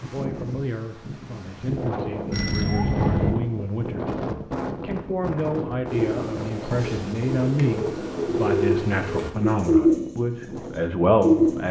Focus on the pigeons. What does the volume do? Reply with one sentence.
The volume of the pigeons goes up, then down.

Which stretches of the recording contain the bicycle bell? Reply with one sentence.
The bicycle bell can be heard from 2.3 to 3.4 s.